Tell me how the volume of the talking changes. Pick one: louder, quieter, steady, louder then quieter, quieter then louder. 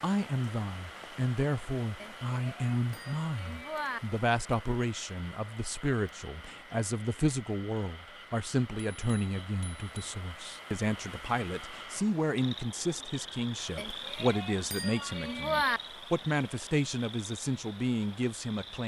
steady.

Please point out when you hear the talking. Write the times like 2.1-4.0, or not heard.
0.0-18.8.